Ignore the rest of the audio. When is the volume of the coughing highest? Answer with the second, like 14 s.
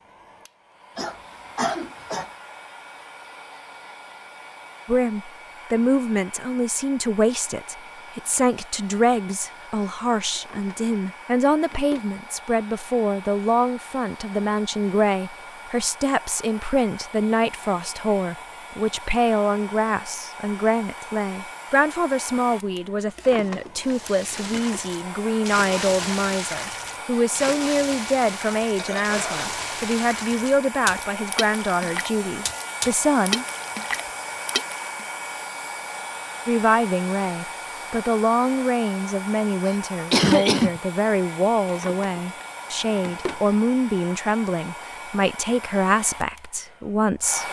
40 s.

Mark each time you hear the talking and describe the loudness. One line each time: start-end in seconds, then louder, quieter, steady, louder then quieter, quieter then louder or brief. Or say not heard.
4.8-33.5 steady
36.5-47.4 steady.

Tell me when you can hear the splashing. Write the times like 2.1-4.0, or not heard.
23.8-35.0.